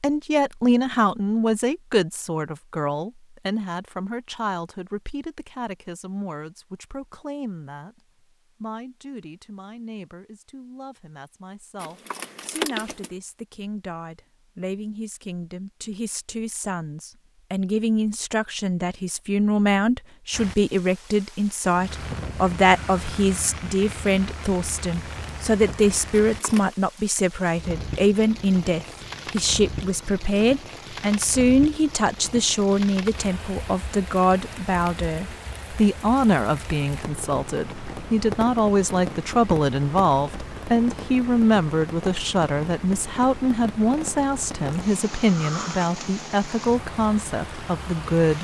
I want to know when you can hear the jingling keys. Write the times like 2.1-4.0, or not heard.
11.8-13.1, 26.2-26.8.